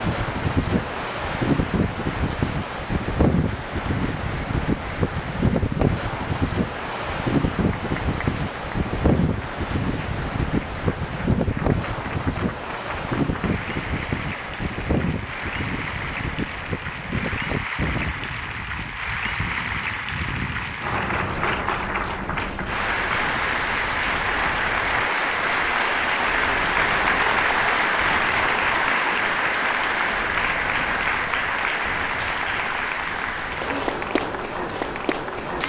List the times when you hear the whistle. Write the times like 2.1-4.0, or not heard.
not heard.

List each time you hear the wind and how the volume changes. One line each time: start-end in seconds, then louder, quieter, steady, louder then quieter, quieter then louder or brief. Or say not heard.
0.0-35.6 quieter.